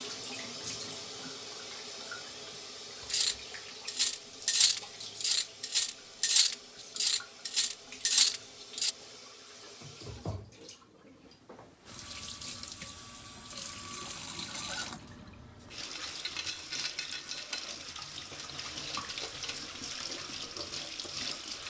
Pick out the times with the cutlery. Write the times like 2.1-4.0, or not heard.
3.1-8.9.